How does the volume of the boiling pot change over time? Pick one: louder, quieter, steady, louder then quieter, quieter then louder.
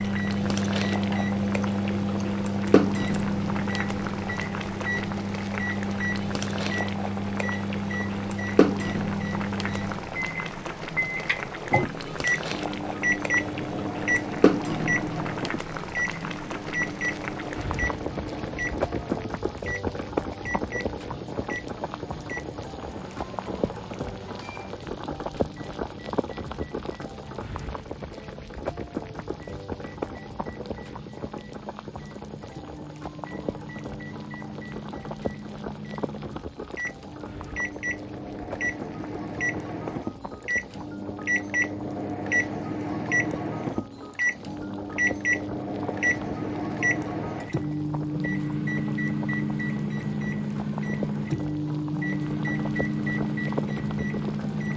quieter.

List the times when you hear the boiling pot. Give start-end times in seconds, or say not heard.
0.0-54.7.